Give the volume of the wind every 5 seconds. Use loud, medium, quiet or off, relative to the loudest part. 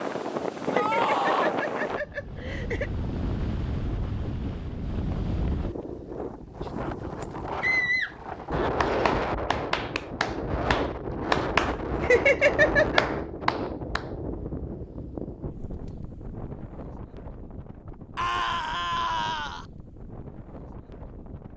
loud, loud, loud, medium, quiet.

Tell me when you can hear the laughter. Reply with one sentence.
You can hear the laughter from 0.7 to 2.9 s and from 12.0 to 13.0 s.